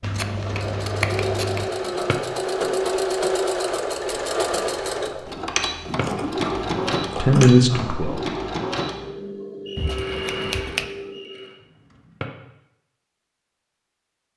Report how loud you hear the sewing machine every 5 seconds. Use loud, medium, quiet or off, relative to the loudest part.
loud, loud, medium.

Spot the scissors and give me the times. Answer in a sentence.
The scissors can be heard from 0.0 to 1.7 s, from 6.0 to 8.0 s and from 9.8 to 10.8 s.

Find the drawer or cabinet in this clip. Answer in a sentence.
You can hear the drawer or cabinet from 1.8 to 2.3 s, from 5.8 to 6.2 s and from 11.9 to 12.3 s.